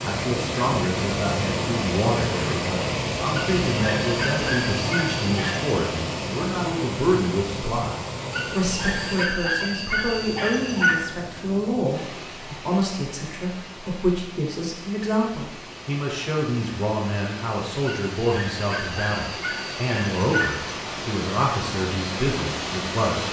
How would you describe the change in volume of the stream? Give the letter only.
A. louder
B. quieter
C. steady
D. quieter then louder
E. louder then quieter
D.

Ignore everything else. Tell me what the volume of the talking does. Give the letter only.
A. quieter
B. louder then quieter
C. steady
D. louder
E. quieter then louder
C.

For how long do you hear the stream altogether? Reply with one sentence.
You can hear the stream for 23 seconds altogether.